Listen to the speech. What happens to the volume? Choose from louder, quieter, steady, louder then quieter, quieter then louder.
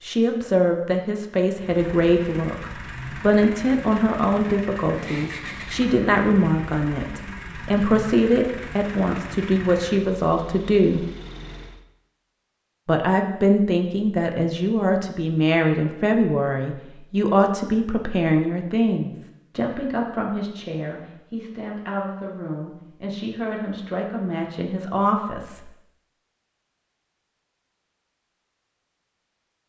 quieter.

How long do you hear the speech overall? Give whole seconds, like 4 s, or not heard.
24 s.